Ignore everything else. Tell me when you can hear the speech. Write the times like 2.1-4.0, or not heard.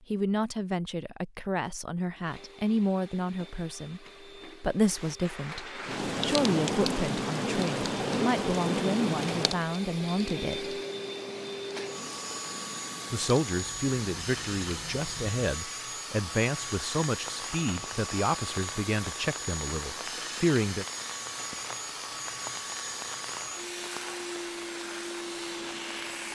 0.1-10.8, 13.1-20.9.